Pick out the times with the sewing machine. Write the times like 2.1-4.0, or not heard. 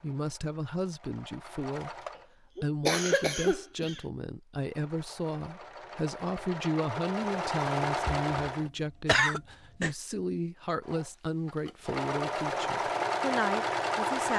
0.0-2.2, 4.6-8.7, 10.8-14.3.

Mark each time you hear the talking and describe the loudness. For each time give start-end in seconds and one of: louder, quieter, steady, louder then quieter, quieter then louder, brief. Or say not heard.
0.0-2.0 brief
2.6-14.3 steady.